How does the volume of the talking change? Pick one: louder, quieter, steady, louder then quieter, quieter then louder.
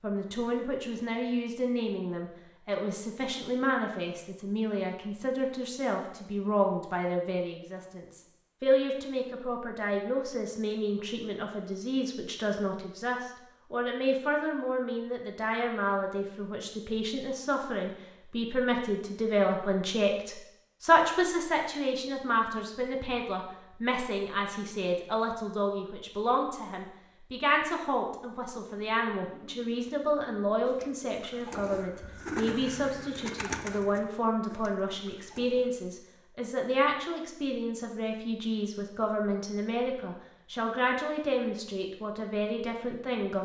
steady.